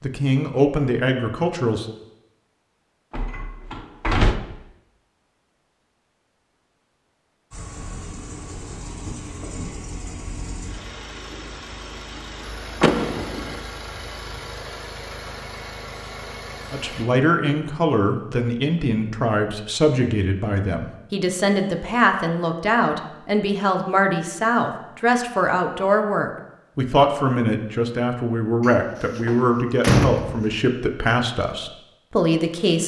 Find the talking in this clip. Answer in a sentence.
You can hear the talking from 0.0 to 1.9 s and from 16.7 to 32.8 s.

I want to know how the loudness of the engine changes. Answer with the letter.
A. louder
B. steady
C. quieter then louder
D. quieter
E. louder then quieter
B.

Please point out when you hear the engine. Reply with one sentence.
The engine can be heard from 7.5 to 17.1 s.